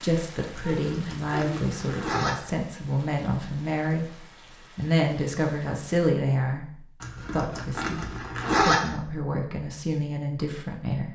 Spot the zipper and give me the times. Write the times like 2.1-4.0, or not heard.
0.6-2.3, 7.0-8.8.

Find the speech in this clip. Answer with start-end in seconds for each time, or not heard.
0.0-11.1.